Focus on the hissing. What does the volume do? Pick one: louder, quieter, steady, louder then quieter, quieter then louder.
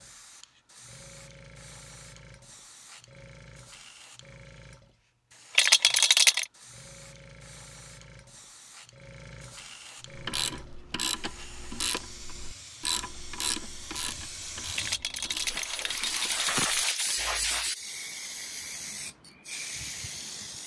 louder.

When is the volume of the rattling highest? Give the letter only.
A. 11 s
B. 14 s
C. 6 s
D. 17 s
C.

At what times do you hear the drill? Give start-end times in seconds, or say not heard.
not heard.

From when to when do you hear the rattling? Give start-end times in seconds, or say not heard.
5.5-6.5, 14.8-16.9.